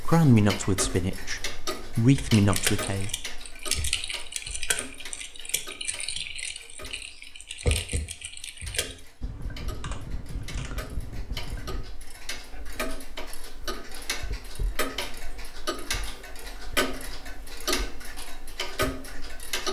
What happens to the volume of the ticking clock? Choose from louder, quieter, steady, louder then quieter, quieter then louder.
quieter then louder.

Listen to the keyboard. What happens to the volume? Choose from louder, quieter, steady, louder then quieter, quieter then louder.
quieter.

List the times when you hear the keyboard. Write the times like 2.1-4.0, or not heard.
2.1-11.8.